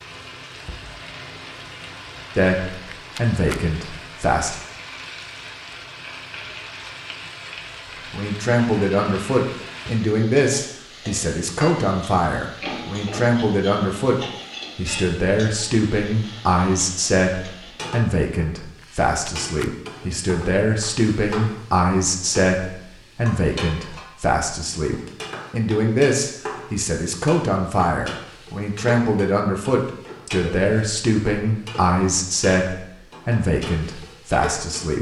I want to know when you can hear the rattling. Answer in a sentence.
You can hear the rattling from 2.7 to 3.6 s and from 18.8 to 19.7 s.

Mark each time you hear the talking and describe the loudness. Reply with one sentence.
The talking can be heard briefly from 2.4 to 4.5 s; and from 8.1 to 34.9 s, at a steady volume.